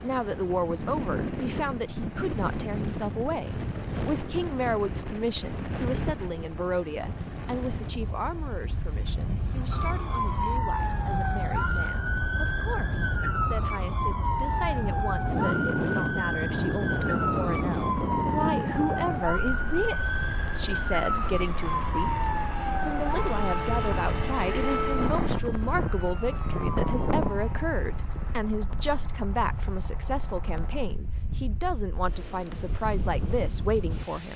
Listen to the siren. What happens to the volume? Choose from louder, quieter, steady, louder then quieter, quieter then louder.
steady.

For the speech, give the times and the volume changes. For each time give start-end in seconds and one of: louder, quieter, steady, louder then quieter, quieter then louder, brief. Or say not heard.
0.0-34.3 quieter then louder.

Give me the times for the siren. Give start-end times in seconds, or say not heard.
9.7-28.4.